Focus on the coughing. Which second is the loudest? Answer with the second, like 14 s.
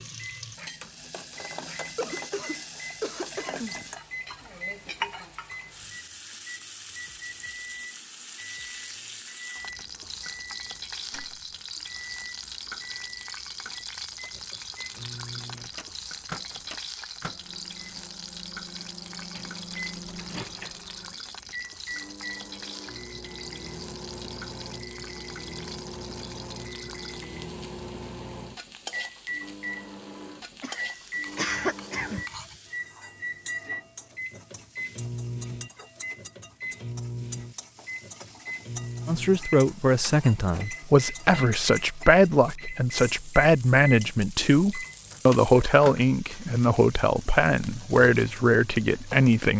32 s.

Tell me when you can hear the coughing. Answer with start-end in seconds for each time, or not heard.
1.9-3.8, 30.6-32.5.